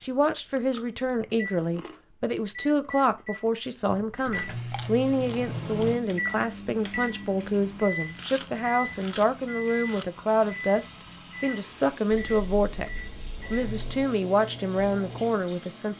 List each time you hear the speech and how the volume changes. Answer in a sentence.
The speech can be heard from 0.0 to 15.9 s, at a steady volume.